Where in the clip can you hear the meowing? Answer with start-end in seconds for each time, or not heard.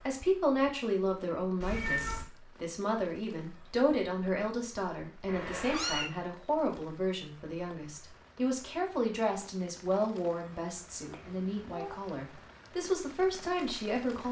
1.6-2.2, 5.2-6.1, 11.1-12.0.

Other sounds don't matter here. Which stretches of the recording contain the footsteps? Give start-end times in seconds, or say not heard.
not heard.